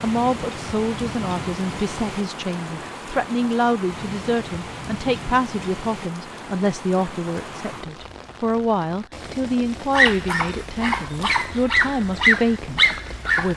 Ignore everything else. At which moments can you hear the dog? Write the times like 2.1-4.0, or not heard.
9.9-13.5.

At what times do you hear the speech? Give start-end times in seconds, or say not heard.
0.0-13.5.